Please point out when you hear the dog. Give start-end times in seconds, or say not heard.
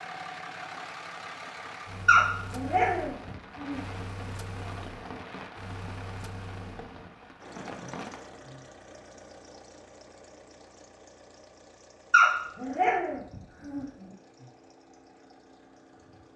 2.0-3.8, 12.1-13.8.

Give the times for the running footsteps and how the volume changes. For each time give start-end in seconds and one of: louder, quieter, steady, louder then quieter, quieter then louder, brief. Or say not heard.
not heard.